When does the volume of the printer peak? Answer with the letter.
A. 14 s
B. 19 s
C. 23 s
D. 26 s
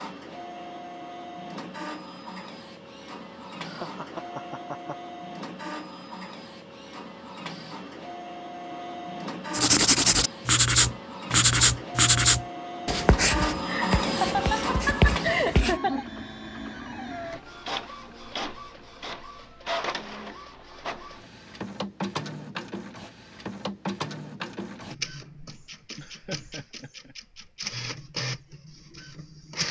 A.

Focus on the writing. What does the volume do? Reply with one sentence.
The loudness of the writing goes down.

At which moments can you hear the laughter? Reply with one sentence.
The laughter can be heard from 3.6 to 5.1 s, from 13.3 to 16.1 s and from 25.9 to 27.1 s.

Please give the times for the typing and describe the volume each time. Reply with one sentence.
The typing can't be heard in this clip.